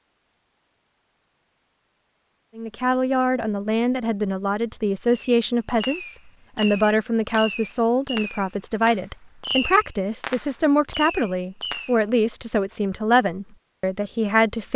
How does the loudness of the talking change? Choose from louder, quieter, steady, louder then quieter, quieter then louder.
steady.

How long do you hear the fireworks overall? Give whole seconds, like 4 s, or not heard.
7 s.